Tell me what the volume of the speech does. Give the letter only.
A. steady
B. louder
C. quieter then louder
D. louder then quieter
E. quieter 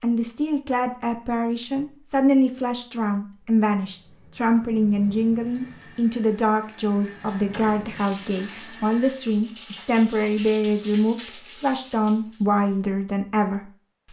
A.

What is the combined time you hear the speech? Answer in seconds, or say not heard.
14 s.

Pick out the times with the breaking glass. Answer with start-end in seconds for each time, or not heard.
not heard.